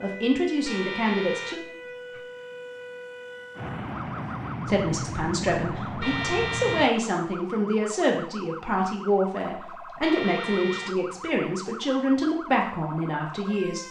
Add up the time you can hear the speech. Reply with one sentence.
The speech can be heard for 11 seconds in total.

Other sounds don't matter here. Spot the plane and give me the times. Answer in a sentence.
The plane can be heard from 3.5 to 6.9 s.